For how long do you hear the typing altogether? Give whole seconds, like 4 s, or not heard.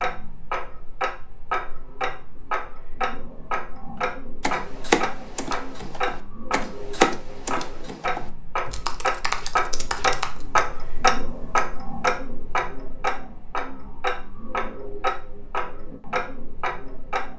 6 s.